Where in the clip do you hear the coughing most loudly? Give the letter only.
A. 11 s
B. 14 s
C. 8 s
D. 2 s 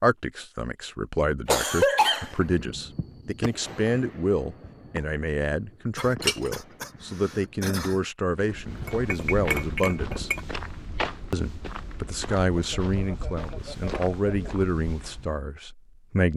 D.